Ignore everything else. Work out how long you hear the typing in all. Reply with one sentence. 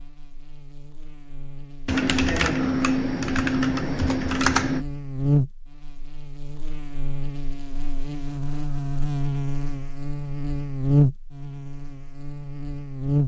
The typing can be heard for 3 seconds in total.